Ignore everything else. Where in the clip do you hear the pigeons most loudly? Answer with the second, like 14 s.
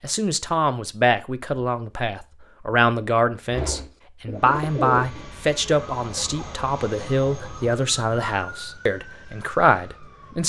5 s.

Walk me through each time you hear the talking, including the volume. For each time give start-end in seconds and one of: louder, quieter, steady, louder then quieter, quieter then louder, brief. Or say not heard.
0.0-10.4 steady.